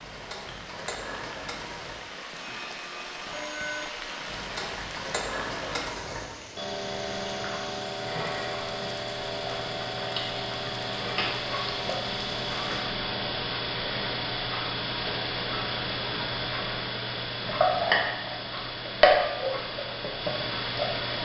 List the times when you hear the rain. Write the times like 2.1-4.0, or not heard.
0.0-13.0.